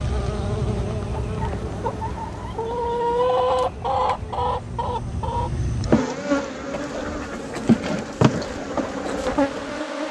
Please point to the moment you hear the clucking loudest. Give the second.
3 s.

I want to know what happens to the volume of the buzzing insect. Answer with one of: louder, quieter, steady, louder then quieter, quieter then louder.
quieter then louder.